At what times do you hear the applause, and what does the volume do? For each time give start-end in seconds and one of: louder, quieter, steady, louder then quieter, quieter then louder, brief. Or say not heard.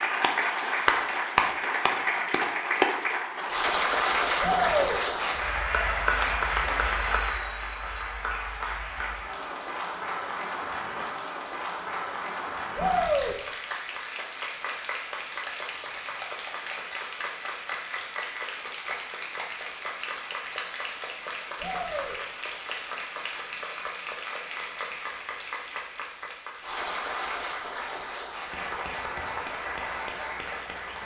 0.0-31.0 quieter.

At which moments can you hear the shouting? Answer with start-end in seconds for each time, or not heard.
4.4-5.0, 12.8-13.3, 21.6-22.1.